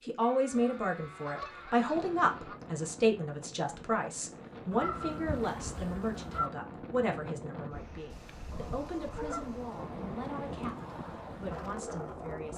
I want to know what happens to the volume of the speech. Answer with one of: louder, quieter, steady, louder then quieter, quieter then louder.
quieter.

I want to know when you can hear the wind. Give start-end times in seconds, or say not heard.
1.9-12.5.